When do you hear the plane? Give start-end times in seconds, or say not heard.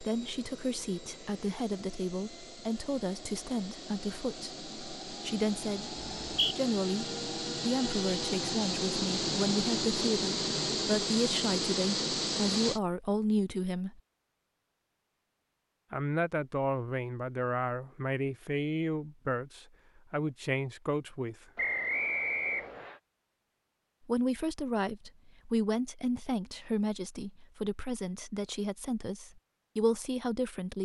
0.0-12.8.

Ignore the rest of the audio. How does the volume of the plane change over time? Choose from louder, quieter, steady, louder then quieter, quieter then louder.
louder.